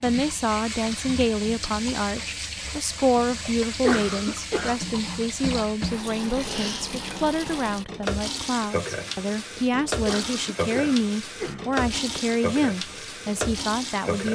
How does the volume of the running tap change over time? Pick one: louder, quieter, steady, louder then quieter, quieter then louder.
steady.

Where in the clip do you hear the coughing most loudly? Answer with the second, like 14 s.
4 s.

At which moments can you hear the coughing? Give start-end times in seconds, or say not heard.
3.5-4.8, 10.1-11.8.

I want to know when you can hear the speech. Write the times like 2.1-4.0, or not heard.
0.0-14.3.